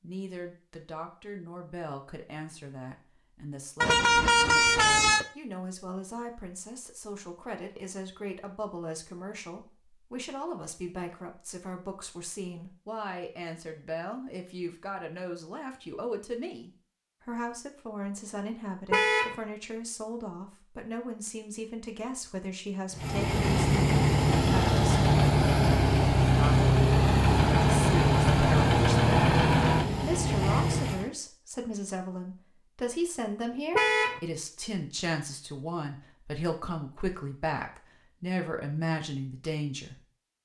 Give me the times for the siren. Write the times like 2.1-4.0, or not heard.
not heard.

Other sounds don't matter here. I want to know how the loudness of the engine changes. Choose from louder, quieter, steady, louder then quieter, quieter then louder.
steady.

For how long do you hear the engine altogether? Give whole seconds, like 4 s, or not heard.
8 s.